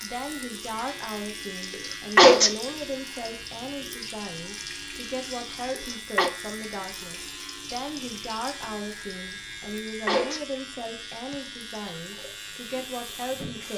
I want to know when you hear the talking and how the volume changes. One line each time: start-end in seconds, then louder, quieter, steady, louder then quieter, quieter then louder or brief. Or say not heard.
0.0-13.7 steady.